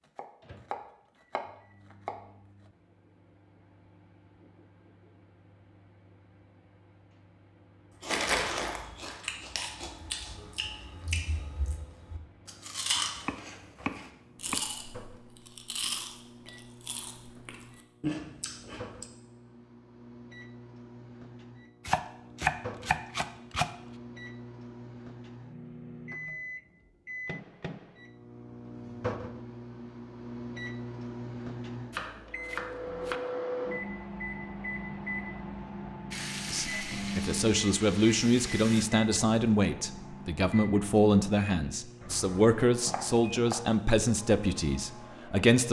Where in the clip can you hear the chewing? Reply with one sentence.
The chewing can be heard from 8.0 to 19.1 s.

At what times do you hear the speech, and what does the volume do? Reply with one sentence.
You can hear the speech from 36.5 to 45.6 s, at a steady volume.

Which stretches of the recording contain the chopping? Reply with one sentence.
You can hear the chopping from 0.1 to 2.2 s, from 12.9 to 14.6 s, from 21.9 to 23.7 s, from 31.9 to 33.2 s and from 42.0 to 43.7 s.